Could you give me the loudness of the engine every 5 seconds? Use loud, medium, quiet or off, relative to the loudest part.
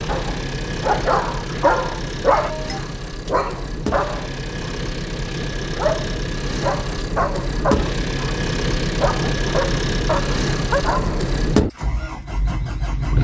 medium, loud, loud.